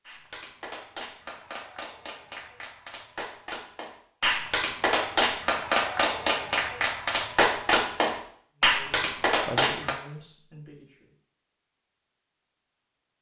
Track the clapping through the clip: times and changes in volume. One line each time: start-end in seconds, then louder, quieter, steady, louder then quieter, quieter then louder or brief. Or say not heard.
0.1-9.9 louder.